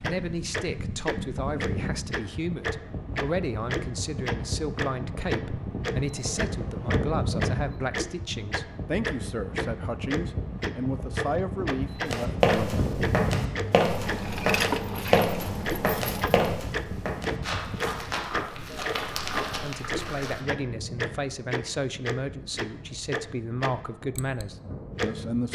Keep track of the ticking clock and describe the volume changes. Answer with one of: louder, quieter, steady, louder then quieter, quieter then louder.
steady.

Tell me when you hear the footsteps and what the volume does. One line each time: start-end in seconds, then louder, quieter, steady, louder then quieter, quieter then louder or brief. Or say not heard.
12.1-20.4 quieter.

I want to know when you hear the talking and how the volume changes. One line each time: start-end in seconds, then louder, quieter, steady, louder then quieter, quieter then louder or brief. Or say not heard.
0.0-12.8 steady
19.6-25.5 steady.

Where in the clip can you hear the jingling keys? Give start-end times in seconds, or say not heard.
13.9-16.5.